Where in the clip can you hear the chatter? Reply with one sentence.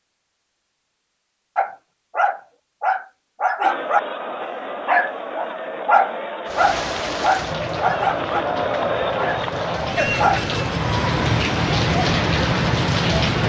You can hear the chatter from 3.6 to 13.4 s.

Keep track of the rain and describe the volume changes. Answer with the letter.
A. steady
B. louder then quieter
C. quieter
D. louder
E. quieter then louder
E.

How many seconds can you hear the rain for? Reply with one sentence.
You can hear the rain for 7 seconds altogether.